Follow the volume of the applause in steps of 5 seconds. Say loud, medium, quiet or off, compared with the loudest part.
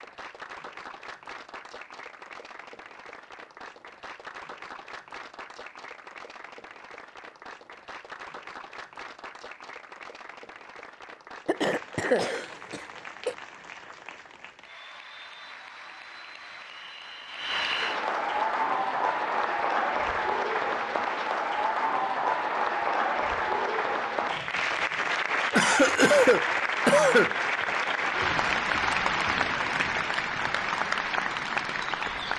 quiet, quiet, quiet, loud, loud, loud, loud.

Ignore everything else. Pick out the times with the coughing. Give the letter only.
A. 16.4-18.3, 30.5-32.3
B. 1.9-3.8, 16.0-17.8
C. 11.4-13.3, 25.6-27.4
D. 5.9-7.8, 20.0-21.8
C.